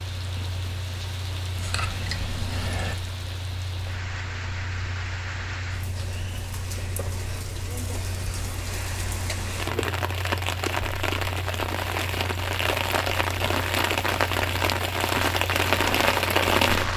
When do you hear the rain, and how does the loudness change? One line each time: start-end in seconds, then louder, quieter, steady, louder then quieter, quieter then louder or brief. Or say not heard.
0.0-16.9 louder.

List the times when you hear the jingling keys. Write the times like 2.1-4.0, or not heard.
1.6-3.0.